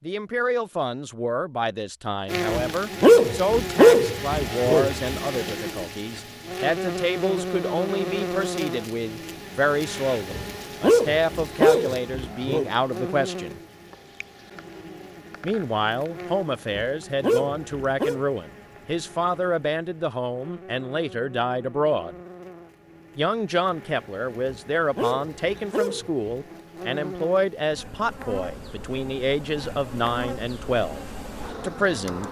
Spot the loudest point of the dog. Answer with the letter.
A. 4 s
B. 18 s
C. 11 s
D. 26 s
A.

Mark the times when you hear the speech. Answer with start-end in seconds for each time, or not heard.
0.0-13.6, 15.4-22.1, 23.1-31.0, 31.6-32.2.